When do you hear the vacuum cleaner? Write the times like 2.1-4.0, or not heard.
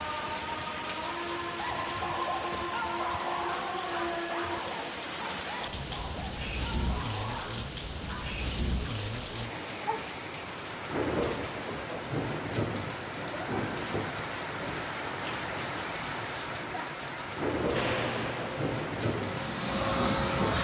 17.7-20.5.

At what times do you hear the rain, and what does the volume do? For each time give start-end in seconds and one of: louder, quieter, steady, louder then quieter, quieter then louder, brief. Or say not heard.
0.0-20.5 steady.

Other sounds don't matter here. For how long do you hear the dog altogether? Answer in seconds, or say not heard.
7 s.